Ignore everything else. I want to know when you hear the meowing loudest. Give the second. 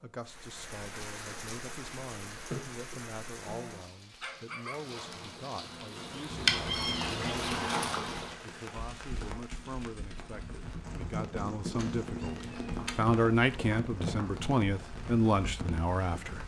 7 s.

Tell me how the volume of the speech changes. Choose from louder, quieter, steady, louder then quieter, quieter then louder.
louder.